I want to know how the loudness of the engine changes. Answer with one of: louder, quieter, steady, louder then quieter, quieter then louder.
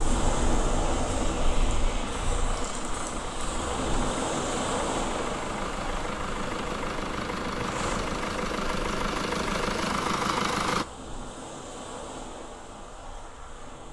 louder.